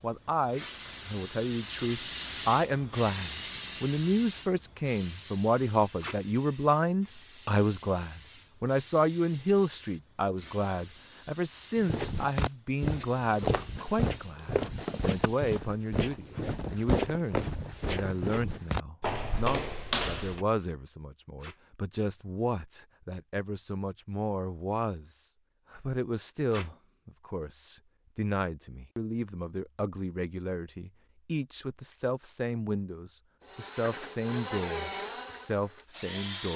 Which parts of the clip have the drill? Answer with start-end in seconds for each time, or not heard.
33.4-36.5.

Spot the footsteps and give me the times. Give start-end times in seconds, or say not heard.
11.8-20.4.